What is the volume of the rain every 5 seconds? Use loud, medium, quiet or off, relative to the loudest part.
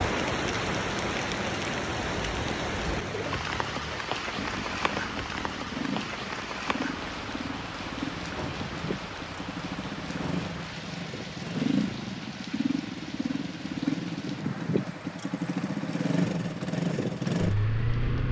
loud, medium, medium, quiet.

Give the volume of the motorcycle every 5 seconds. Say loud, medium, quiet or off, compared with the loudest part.
quiet, medium, loud, loud.